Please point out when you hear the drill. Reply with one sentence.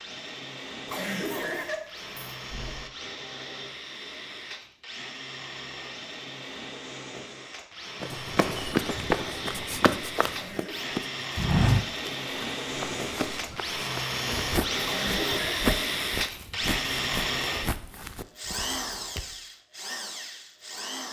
The drill can be heard from 0.0 to 21.0 s.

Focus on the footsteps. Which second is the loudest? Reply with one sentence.
The volume of the footsteps peaks at 12 seconds.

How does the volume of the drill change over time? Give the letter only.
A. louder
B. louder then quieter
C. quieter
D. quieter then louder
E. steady
A.